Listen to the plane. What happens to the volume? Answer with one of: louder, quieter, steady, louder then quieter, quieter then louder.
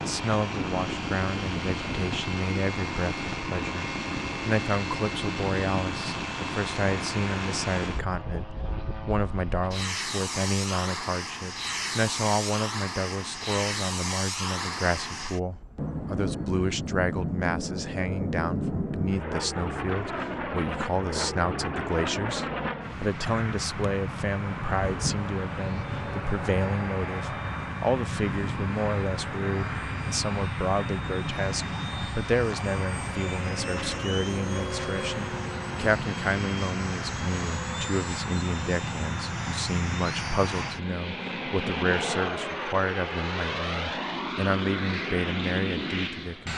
steady.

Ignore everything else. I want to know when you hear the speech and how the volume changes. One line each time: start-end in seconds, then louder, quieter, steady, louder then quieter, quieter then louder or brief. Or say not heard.
0.1-46.5 steady.